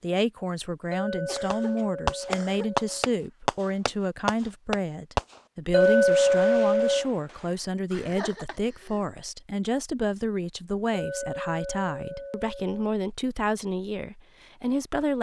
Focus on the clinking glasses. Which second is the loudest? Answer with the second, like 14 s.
6 s.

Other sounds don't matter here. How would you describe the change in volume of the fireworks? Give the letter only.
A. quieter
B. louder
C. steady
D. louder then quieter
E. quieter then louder
A.